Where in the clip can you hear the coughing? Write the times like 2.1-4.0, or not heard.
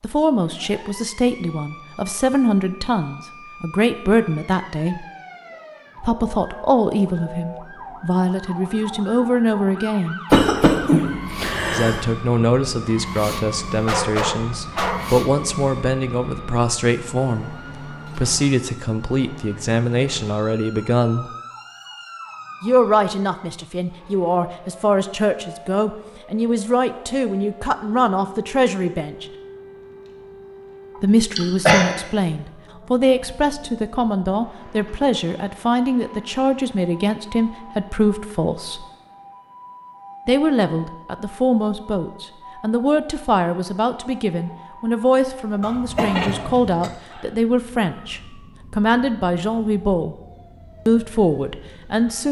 10.3-12.0, 31.4-31.9, 45.6-46.9.